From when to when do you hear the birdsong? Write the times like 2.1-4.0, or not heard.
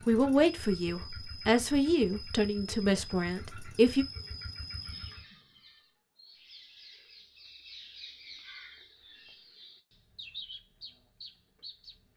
4.6-12.1.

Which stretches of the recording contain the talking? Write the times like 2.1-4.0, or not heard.
0.1-4.0.